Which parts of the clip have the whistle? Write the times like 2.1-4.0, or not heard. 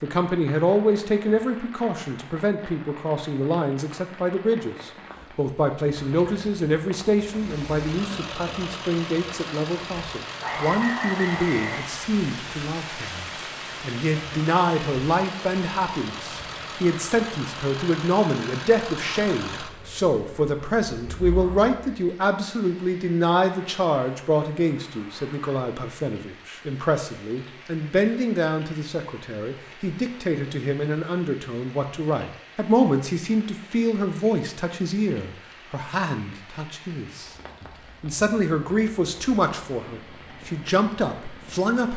10.4-11.9.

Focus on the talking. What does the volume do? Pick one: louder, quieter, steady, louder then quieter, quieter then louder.
steady.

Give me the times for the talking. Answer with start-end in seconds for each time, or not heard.
0.0-41.9.